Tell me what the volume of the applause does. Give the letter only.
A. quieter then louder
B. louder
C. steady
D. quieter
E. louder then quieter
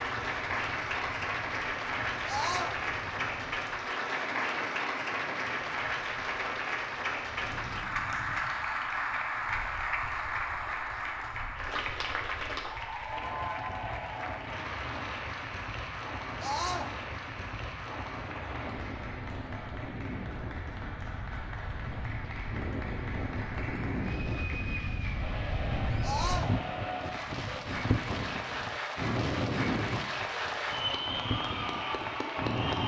A.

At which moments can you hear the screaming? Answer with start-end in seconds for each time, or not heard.
2.2-2.8, 16.4-16.9, 26.0-26.6.